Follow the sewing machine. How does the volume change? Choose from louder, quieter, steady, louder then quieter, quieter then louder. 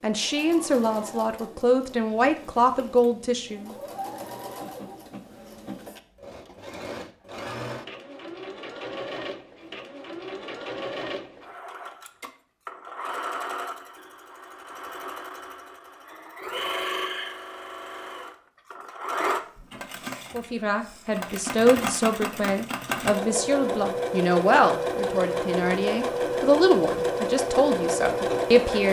louder.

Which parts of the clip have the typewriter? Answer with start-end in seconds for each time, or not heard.
not heard.